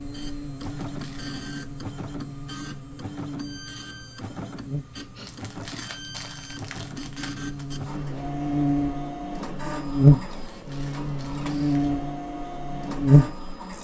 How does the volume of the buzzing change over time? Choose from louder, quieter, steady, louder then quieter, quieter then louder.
louder.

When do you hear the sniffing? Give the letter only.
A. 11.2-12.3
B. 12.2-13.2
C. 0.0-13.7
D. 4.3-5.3
D.